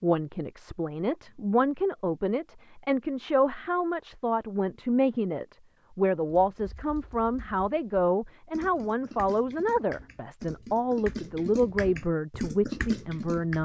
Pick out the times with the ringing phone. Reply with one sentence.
The ringing phone can't be heard in this clip.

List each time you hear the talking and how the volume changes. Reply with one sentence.
You can hear the talking from 0.0 to 13.6 s, at a steady volume.